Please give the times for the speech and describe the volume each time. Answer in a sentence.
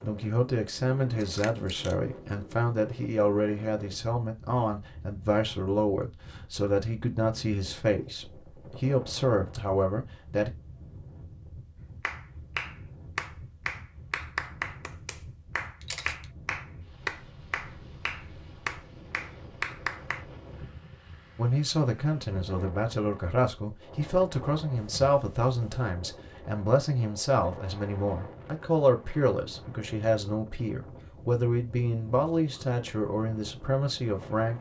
You can hear the speech from 0.0 to 10.5 s, at a steady volume; and from 21.4 to 34.5 s, at a steady volume.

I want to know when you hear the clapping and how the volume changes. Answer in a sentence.
You can hear the clapping from 12.0 to 20.2 s, at a steady volume.